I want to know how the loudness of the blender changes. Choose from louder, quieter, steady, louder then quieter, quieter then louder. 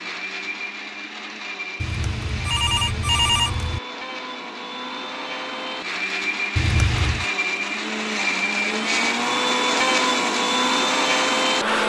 louder.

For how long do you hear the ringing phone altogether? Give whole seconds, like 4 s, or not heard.
3 s.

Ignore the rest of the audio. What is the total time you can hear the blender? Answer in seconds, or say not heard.
12 s.